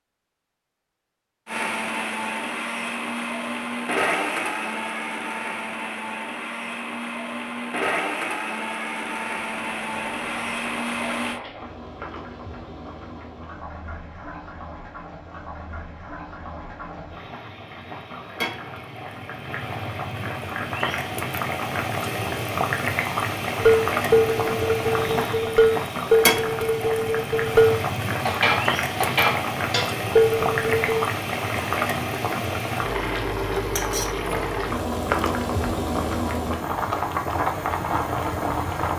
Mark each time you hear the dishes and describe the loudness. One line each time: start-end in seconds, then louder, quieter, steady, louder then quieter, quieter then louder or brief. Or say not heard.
23.6-31.1 steady.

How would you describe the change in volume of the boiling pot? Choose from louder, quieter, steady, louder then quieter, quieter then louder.
louder.